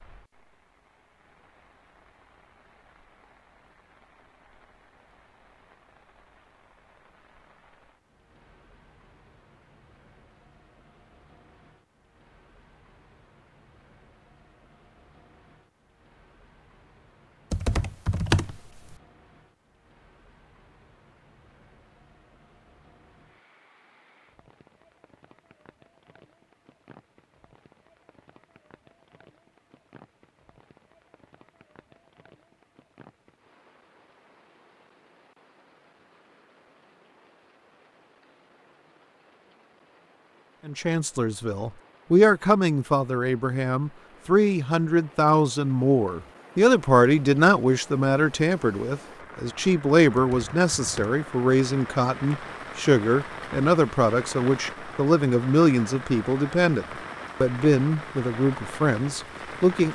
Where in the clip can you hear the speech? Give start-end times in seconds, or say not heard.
40.6-59.8.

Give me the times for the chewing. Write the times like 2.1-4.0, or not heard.
not heard.